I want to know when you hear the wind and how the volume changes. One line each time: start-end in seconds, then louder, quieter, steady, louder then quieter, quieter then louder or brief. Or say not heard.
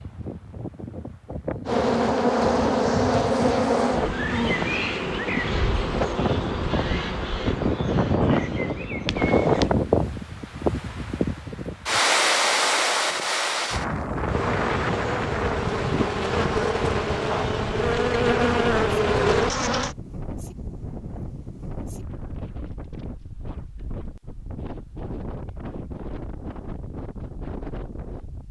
0.0-28.4 louder then quieter.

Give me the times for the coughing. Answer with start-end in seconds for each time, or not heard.
not heard.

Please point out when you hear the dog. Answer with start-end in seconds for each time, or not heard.
not heard.